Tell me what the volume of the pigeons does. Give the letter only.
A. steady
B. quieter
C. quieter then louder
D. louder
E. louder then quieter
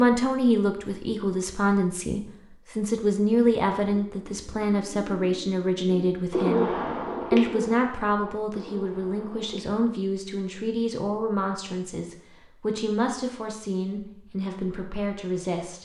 E.